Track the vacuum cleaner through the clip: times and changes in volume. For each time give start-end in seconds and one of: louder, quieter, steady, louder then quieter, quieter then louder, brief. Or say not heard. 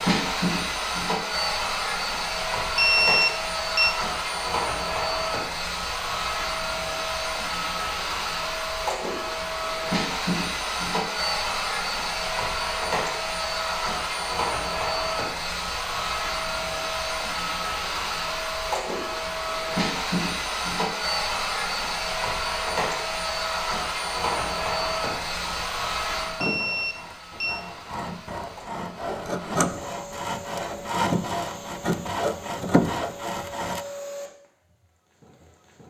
0.0-35.8 quieter.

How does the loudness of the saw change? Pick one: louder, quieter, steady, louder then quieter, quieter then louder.
louder.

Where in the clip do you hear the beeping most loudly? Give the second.
3 s.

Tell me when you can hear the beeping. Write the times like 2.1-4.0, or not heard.
2.8-4.0, 26.4-27.6.